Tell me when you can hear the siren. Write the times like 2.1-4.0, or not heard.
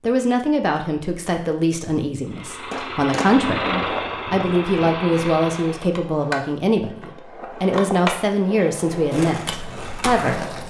not heard.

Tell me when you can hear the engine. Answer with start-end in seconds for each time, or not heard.
2.2-5.9.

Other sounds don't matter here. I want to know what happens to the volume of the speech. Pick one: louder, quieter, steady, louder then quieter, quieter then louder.
steady.